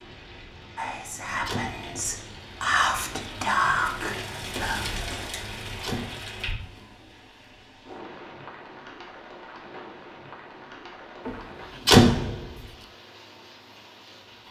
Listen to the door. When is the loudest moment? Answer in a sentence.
The loudest moment of the door is at 12 seconds.